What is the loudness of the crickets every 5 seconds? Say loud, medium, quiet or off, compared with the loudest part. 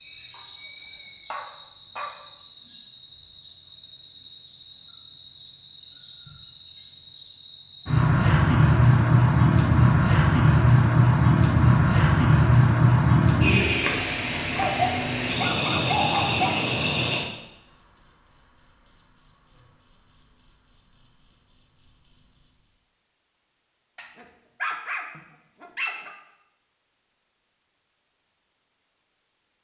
loud, loud, loud, loud, loud, off.